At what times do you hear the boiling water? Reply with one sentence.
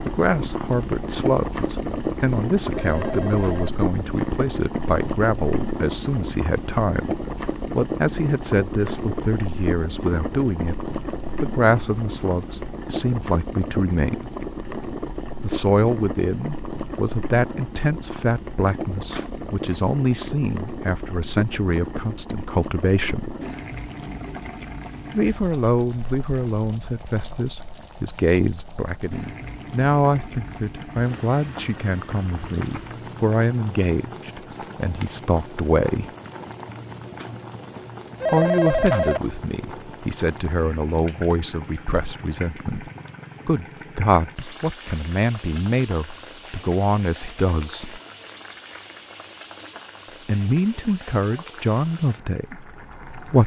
The boiling water can be heard from 0.0 to 53.4 s.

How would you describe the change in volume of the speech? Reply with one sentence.
The volume of the speech stays about the same.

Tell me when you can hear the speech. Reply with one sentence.
You can hear the speech from 0.0 to 14.3 s, from 15.4 to 23.4 s, from 25.1 to 36.1 s, from 38.3 to 48.0 s and from 50.2 to 53.4 s.